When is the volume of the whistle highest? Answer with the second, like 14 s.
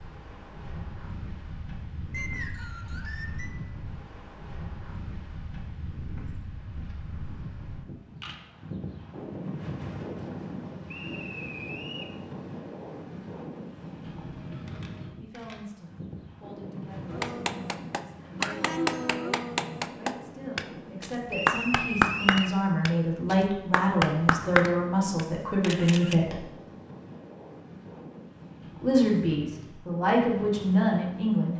22 s.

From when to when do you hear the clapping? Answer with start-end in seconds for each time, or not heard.
17.1-25.2.